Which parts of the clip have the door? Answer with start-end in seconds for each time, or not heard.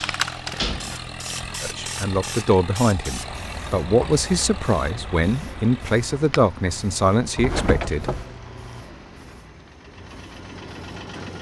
0.6-1.0, 7.3-8.3.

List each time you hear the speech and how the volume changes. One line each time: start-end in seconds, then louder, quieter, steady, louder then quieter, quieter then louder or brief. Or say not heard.
1.6-8.1 steady.